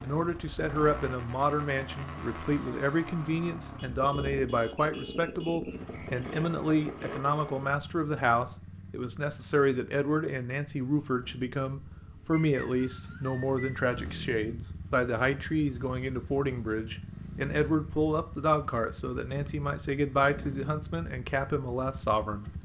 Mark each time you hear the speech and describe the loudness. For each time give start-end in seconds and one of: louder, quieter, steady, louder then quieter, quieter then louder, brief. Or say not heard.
0.0-22.5 steady.